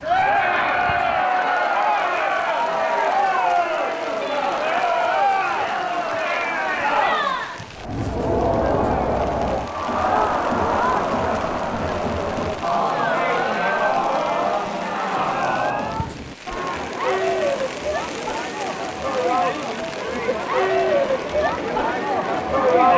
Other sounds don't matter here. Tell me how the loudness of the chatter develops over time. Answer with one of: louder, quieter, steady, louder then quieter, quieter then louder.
steady.